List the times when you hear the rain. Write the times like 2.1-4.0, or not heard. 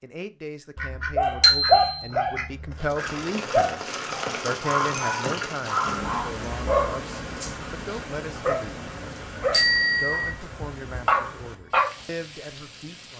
3.0-13.1.